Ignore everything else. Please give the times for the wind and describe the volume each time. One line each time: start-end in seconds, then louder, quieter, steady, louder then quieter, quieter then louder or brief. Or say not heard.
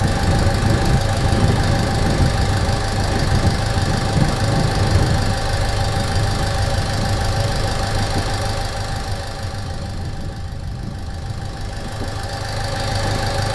0.0-13.5 quieter.